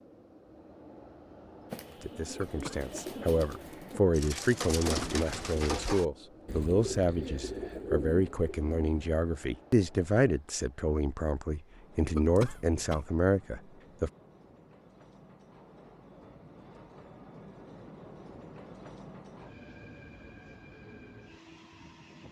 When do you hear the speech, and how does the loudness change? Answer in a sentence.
The speech can be heard from 2.0 to 14.1 s, at a steady volume.